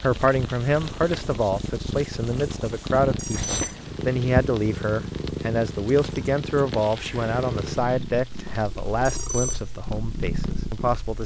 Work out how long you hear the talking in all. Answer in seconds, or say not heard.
11 s.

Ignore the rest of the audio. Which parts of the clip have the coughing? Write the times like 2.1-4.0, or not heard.
not heard.